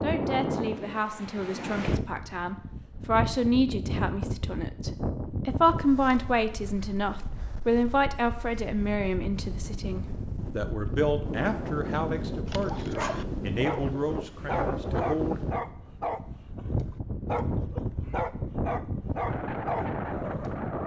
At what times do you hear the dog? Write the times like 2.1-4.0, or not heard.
12.4-20.6.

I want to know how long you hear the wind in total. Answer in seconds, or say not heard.
21 s.